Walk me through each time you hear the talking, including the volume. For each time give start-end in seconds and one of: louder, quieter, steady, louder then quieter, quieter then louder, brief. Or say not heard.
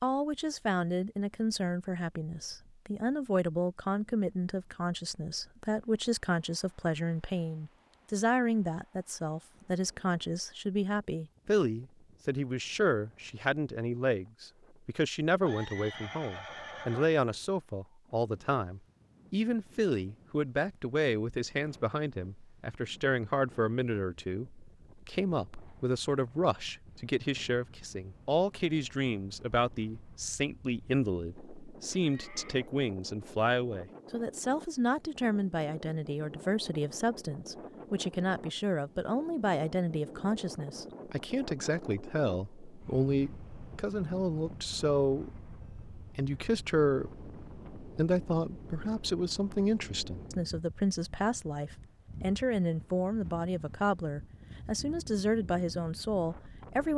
0.0-56.9 steady.